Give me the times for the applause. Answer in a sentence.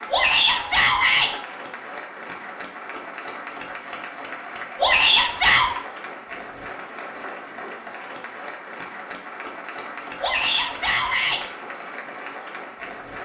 You can hear the applause from 0.0 to 13.2 s.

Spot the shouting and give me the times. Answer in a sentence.
You can hear the shouting from 0.1 to 1.3 s, from 4.8 to 5.7 s and from 10.2 to 11.4 s.